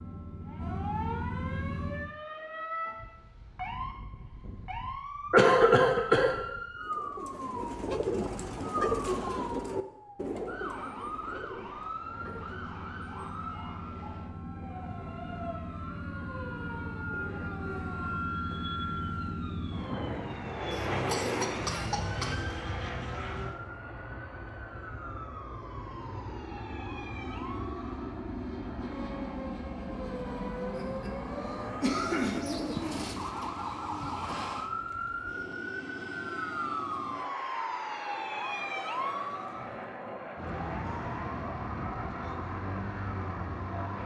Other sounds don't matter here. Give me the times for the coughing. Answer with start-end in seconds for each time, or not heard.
5.3-6.3, 20.7-22.6, 30.8-32.5.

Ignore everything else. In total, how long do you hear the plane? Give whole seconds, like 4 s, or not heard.
34 s.